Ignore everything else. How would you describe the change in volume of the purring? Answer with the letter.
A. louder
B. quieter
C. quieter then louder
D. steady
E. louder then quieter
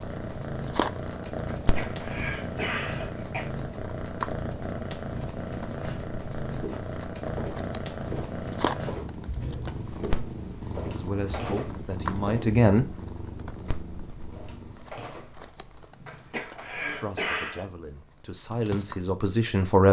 B.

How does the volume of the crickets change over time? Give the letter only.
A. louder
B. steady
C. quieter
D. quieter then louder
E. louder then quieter
C.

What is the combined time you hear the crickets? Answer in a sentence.
The crickets can be heard for 20 seconds in total.